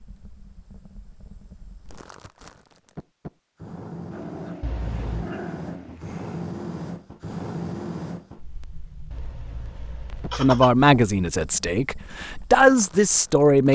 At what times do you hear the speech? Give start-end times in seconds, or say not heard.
10.3-13.7.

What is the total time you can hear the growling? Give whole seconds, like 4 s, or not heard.
2 s.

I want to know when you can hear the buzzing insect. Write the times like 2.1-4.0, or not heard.
not heard.